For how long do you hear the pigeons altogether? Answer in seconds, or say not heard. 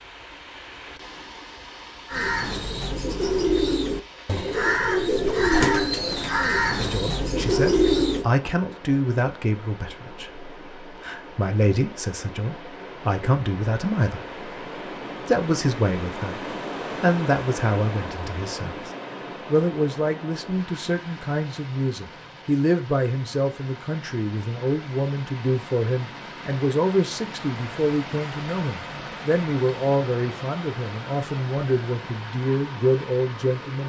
6 s.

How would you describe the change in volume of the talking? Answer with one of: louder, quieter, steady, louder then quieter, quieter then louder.
steady.